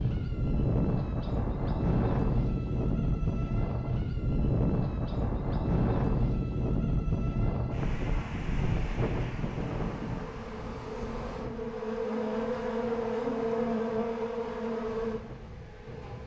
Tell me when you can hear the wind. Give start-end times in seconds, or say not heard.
0.0-16.2.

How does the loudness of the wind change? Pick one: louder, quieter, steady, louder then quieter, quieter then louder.
quieter.